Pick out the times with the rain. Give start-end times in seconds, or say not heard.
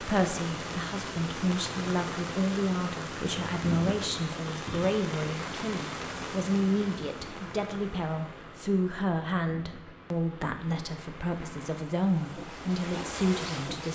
0.0-13.9.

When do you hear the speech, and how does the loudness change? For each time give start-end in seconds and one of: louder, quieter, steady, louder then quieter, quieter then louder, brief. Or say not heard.
0.0-13.9 steady.